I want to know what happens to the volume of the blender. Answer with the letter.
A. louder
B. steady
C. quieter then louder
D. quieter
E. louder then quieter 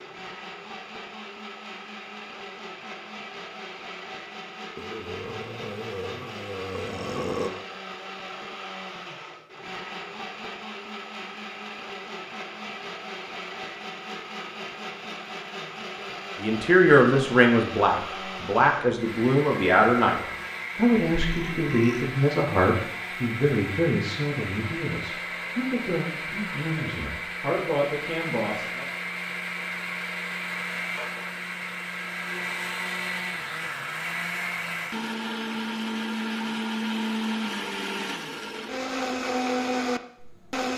A.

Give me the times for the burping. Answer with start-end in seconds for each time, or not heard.
4.8-7.5, 21.2-22.1.